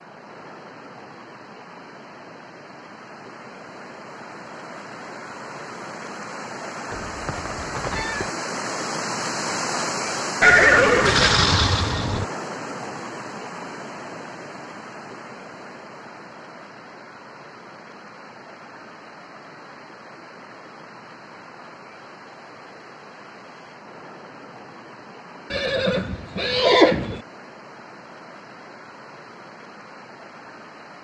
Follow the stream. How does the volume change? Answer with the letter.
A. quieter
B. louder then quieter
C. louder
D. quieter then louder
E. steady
B.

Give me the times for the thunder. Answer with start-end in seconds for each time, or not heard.
not heard.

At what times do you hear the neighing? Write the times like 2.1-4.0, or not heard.
6.9-8.3, 10.4-12.2, 25.5-27.2.